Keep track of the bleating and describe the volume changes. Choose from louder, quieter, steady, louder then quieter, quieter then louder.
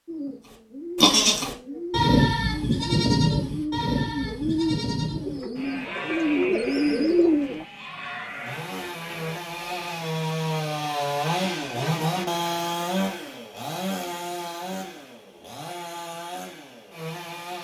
quieter.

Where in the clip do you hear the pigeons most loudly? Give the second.
7 s.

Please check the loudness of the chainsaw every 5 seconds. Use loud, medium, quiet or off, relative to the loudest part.
off, medium, loud, medium.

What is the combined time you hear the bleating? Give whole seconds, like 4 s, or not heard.
9 s.